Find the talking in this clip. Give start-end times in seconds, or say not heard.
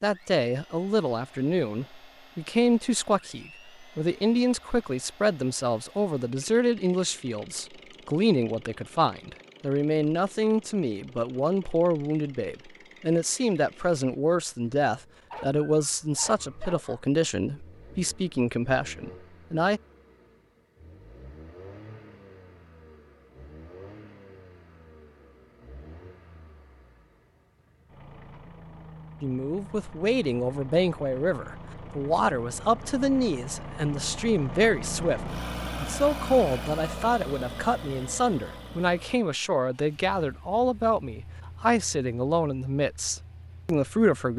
0.0-19.8, 29.2-44.3.